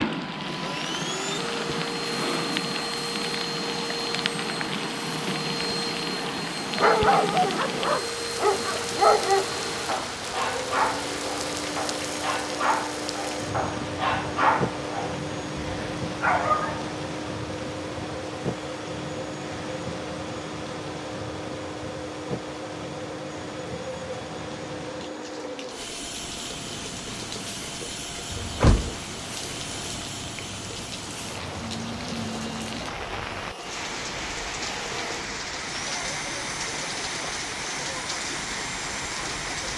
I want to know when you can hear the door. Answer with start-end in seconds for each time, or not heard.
28.3-28.9.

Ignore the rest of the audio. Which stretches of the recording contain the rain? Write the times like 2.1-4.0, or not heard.
0.0-39.7.